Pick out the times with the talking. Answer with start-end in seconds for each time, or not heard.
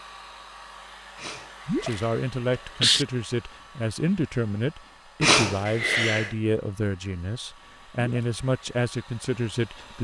1.8-9.9.